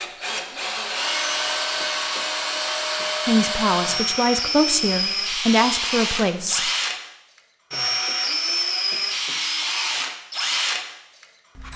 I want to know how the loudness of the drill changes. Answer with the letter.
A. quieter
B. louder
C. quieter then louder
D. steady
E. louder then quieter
D.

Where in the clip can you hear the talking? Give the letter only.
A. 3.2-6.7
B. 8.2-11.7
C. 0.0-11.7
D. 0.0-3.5
A.